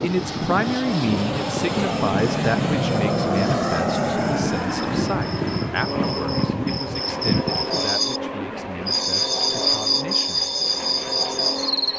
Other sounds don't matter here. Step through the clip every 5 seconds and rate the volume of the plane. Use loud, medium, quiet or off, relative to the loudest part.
loud, medium, medium.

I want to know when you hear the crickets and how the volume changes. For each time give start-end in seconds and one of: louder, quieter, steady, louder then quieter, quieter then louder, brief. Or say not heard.
0.0-11.9 louder.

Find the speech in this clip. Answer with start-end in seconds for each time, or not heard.
0.0-10.5.